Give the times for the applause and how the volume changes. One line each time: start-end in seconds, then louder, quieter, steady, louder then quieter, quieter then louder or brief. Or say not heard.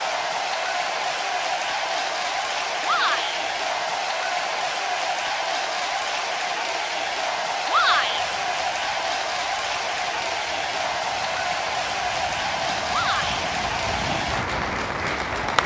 0.0-15.6 steady.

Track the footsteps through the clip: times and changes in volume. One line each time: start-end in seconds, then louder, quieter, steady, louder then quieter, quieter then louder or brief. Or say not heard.
not heard.